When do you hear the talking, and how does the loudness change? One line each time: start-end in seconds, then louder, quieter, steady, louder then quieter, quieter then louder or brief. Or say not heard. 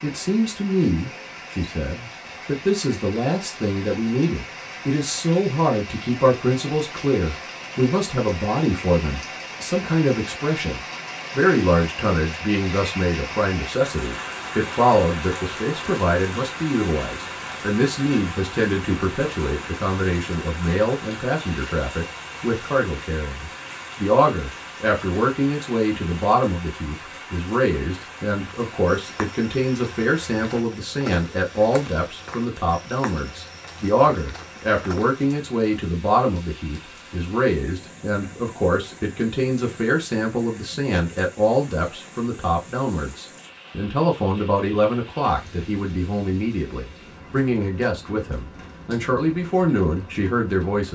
0.0-50.9 steady.